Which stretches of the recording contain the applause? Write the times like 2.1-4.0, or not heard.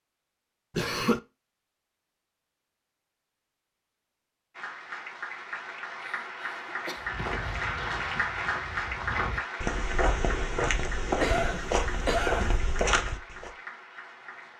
4.5-14.5.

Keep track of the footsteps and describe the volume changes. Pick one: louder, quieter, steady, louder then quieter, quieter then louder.
louder.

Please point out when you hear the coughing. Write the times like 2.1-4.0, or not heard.
0.8-1.2, 6.0-7.1, 11.2-12.6.